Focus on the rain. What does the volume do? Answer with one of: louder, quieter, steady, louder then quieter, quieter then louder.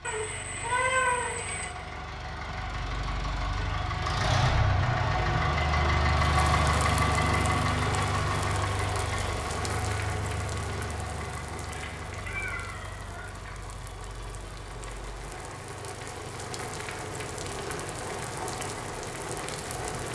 quieter then louder.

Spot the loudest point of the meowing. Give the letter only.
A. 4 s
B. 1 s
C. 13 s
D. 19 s
B.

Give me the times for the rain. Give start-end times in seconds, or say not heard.
6.2-20.1.